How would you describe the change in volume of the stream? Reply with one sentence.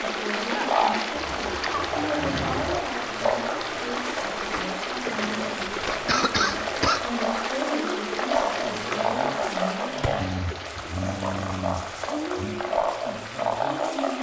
The loudness of the stream goes down.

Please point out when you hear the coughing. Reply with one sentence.
You can hear the coughing from 5.6 to 7.0 s.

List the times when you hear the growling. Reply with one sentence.
The growling can be heard from 1.1 to 2.8 s, from 4.9 to 5.5 s and from 10.2 to 12.6 s.